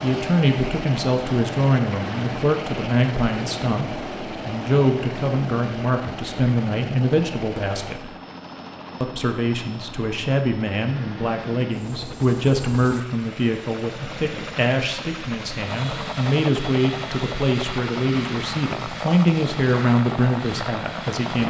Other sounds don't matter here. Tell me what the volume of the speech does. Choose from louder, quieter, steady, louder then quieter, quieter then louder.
steady.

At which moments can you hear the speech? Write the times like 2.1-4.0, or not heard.
0.0-8.1, 9.0-21.4.